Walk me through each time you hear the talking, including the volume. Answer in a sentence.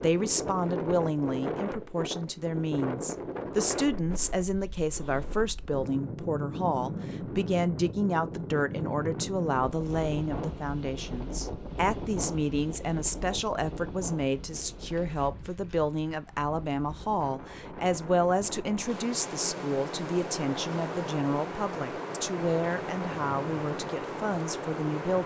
You can hear the talking from 0.0 to 25.2 s, at a steady volume.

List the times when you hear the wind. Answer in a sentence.
You can hear the wind from 0.0 to 25.2 s.